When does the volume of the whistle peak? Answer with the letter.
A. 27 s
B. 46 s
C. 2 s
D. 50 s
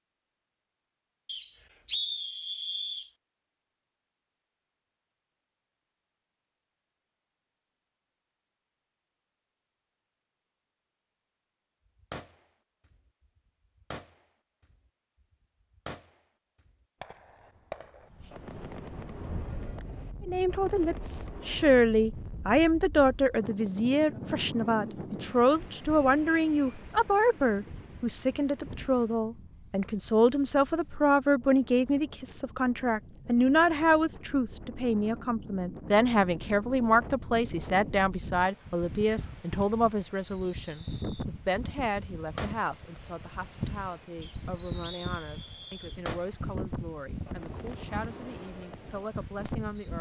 C.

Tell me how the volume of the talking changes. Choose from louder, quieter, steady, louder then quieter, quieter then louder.
quieter.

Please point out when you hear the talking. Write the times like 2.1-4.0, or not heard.
20.2-49.9.